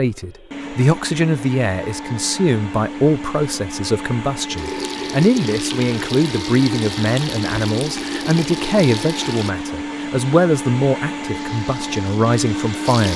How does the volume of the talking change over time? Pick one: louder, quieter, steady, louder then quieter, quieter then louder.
steady.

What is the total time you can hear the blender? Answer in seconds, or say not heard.
13 s.